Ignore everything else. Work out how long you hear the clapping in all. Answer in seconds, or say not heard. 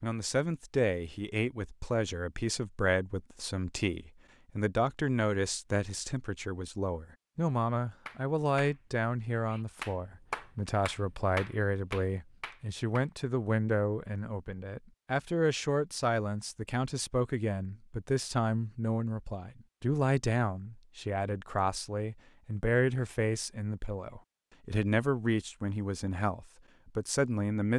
5 s.